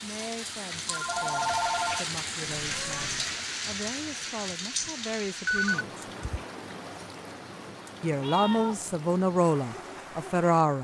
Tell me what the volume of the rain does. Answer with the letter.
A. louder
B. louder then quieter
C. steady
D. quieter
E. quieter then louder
D.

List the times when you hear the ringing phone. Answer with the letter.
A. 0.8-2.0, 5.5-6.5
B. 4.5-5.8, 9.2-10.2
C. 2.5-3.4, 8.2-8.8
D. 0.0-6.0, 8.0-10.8
A.